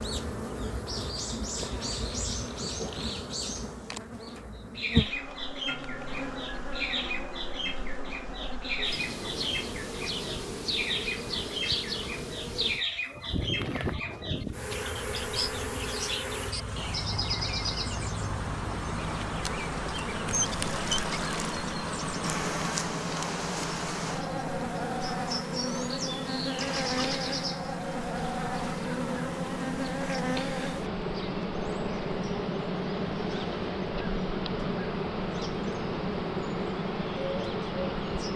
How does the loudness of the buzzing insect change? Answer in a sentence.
The loudness of the buzzing insect stays about the same.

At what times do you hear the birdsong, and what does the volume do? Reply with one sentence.
You can hear the birdsong from 0.0 to 38.3 s, at a steady volume.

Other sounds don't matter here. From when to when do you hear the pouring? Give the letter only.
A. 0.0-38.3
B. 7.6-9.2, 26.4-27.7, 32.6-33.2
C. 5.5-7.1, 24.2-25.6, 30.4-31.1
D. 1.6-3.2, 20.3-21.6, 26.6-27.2
D.